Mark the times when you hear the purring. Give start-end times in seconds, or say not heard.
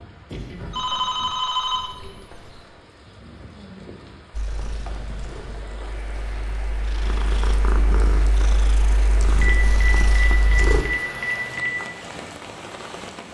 4.3-10.8.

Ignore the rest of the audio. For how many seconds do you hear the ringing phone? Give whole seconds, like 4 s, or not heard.
6 s.